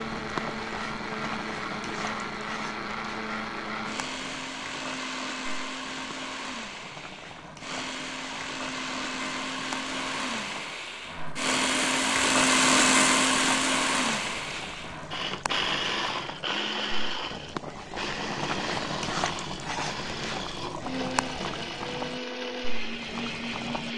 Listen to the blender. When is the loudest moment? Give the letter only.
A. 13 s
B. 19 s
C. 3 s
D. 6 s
A.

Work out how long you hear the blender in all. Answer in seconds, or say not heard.
24 s.